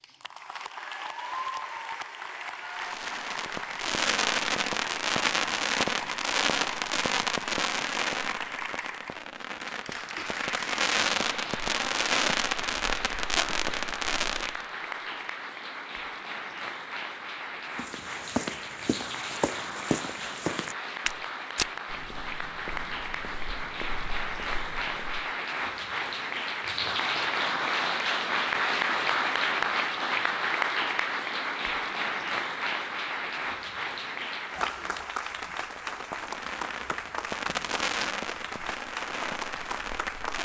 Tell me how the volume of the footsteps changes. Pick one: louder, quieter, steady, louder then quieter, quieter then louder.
quieter.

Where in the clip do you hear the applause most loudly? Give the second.
29 s.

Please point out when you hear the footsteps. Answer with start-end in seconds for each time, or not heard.
17.8-25.3.